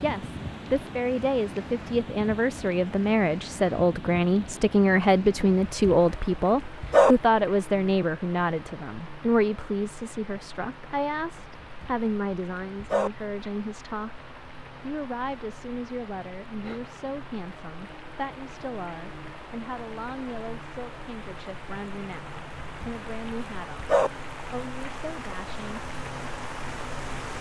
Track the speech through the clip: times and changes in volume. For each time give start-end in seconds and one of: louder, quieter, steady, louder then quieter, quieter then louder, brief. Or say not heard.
0.0-25.8 quieter.